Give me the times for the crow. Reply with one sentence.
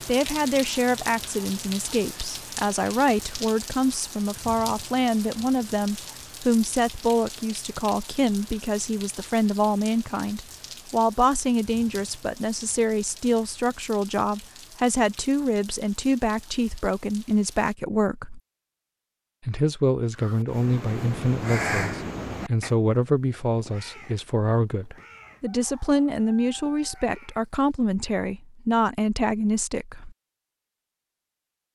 You can hear the crow from 20.1 to 27.5 s.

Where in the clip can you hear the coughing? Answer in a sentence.
The coughing can't be heard in this clip.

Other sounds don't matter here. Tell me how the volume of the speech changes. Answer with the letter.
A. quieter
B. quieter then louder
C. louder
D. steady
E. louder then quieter
D.